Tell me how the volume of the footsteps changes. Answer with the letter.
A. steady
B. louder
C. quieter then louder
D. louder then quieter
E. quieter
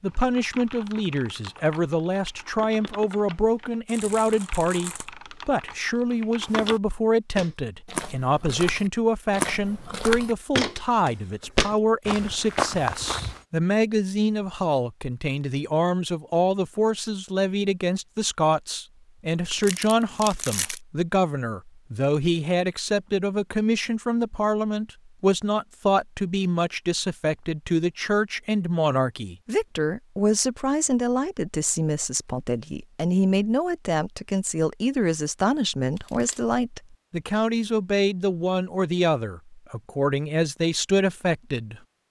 B.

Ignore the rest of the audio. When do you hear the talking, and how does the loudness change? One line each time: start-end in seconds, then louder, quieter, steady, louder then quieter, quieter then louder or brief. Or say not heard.
0.0-41.8 steady.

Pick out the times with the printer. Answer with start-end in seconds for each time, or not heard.
not heard.